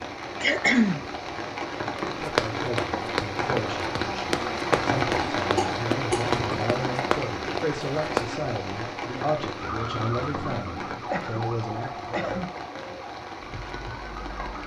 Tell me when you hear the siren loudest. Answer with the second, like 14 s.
10 s.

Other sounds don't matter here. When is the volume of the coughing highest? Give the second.
1 s.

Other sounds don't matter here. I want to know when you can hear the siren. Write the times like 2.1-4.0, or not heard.
9.6-14.6.